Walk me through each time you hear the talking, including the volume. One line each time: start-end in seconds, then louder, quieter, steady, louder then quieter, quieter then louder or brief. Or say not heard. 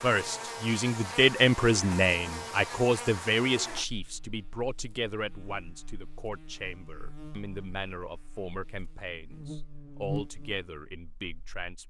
0.0-11.8 quieter.